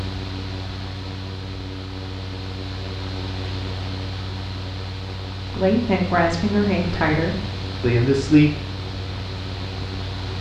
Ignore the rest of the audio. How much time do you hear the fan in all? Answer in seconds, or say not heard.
10 s.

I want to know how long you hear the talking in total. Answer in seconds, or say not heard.
3 s.